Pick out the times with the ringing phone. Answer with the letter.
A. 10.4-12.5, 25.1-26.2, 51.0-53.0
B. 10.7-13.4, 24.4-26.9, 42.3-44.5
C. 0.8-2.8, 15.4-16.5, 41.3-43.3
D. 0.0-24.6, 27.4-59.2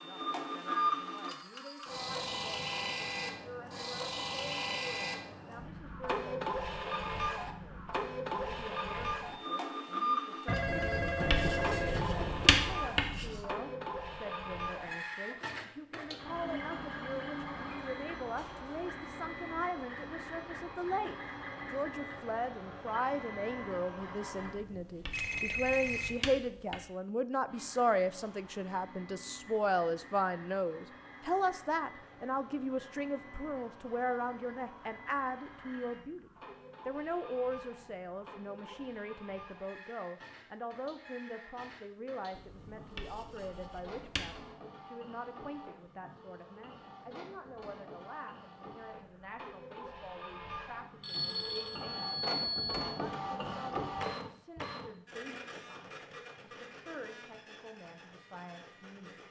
A.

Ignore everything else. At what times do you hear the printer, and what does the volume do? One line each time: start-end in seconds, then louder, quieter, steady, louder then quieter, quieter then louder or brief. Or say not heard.
0.0-24.6 quieter
27.4-59.2 louder.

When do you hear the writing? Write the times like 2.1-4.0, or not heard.
10.7-13.4, 24.4-26.9, 42.3-44.5.